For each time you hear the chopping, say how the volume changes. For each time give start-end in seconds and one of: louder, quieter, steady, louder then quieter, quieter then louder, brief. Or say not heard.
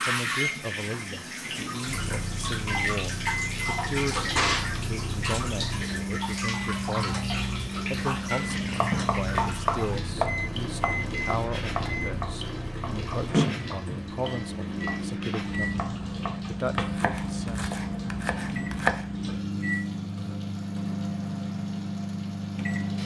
8.7-19.1 quieter then louder.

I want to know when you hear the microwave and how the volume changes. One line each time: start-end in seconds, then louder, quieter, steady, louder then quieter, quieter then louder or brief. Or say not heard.
0.0-23.0 steady.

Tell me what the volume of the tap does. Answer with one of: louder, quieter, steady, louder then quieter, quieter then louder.
quieter.